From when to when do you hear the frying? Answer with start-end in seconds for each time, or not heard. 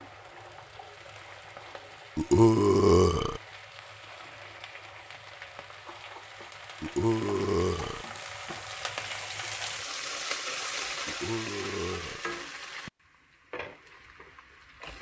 0.0-14.9.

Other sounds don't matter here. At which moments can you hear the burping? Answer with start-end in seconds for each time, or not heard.
2.1-3.4, 6.8-8.1, 11.1-12.2.